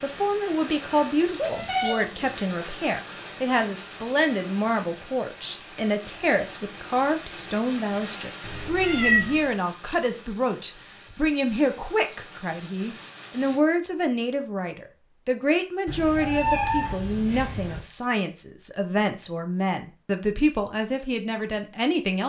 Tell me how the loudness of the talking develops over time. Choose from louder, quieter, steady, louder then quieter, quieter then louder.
steady.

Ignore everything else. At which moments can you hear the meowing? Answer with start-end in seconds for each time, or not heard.
1.4-2.0, 8.4-9.5, 15.8-17.8.